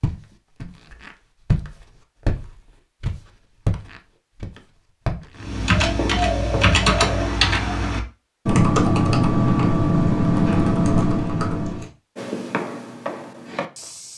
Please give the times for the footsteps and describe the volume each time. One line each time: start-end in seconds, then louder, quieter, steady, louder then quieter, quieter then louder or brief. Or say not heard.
0.0-7.3 quieter
12.2-14.1 brief.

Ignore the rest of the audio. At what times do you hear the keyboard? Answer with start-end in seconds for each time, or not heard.
5.3-11.9.